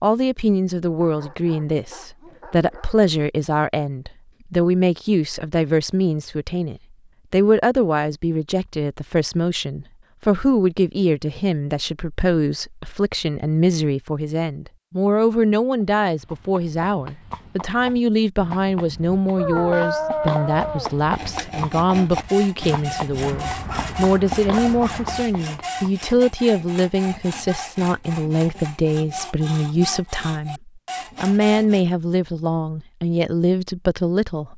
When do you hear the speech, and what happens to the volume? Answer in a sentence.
The speech can be heard from 0.0 to 34.5 s, at a steady volume.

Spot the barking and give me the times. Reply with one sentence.
You can hear the barking from 1.0 to 3.0 s, from 19.4 to 20.9 s and from 23.2 to 25.2 s.